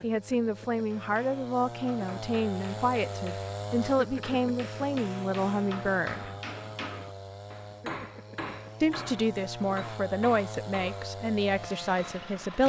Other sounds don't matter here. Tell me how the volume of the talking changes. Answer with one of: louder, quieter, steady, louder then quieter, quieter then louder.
steady.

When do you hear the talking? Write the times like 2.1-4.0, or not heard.
0.0-6.3, 8.8-12.6.